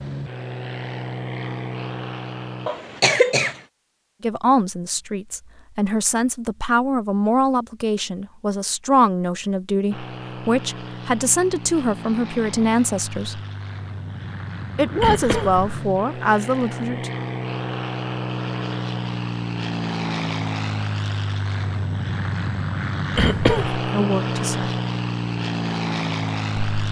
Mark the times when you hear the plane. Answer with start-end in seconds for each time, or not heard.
0.0-2.7, 9.9-26.8.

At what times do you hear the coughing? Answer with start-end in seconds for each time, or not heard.
2.6-3.6, 15.0-15.7, 23.1-23.8.